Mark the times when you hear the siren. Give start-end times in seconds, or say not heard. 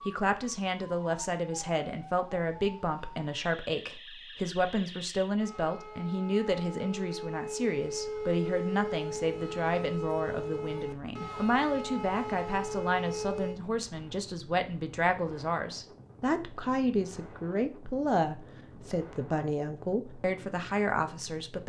0.0-13.6.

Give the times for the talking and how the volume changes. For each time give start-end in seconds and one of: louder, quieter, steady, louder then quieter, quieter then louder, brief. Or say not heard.
0.0-21.6 steady.